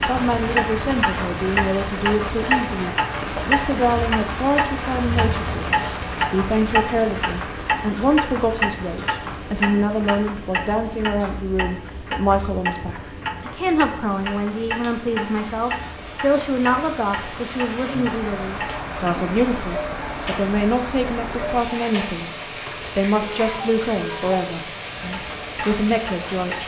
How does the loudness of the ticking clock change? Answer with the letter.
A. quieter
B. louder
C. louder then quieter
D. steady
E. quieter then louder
A.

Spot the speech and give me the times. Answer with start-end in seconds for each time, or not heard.
0.1-22.3, 22.9-26.6.